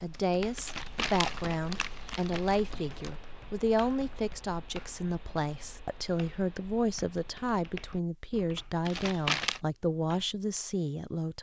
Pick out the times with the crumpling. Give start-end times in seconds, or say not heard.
0.6-3.1, 8.8-9.6.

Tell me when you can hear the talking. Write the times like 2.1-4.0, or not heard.
0.0-11.3.